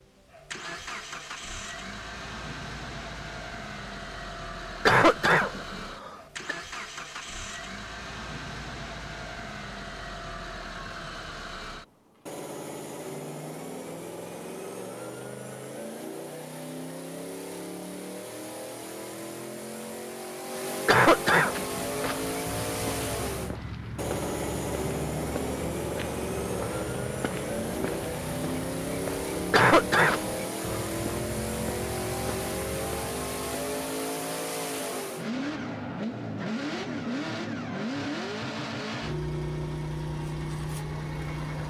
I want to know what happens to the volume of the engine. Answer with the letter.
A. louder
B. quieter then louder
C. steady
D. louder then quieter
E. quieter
A.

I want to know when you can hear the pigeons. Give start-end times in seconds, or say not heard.
not heard.